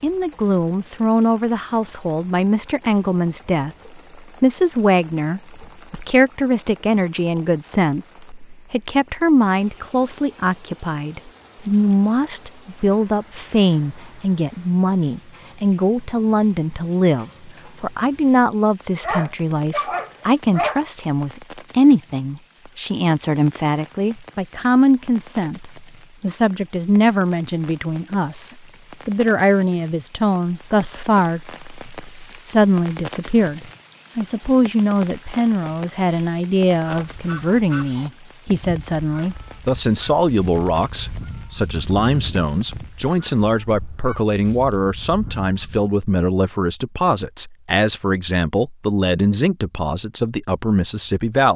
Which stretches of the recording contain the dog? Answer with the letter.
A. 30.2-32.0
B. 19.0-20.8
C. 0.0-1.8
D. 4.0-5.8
B.